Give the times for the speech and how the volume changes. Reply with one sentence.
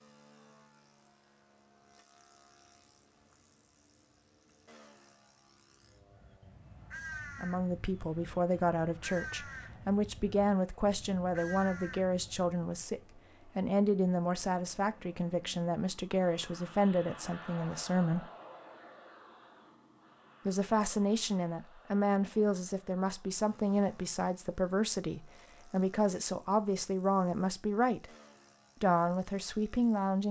You can hear the speech from 7.4 to 18.3 s, at a steady volume; from 20.4 to 28.1 s, at a steady volume; and briefly from 28.8 to 30.2 s.